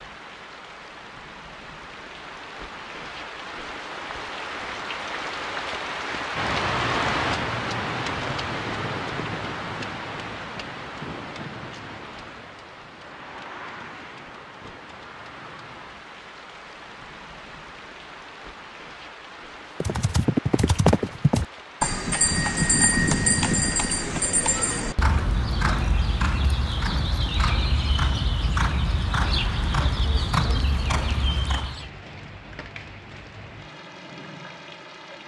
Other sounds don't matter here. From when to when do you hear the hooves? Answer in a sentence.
You can hear the hooves from 19.8 to 31.9 s.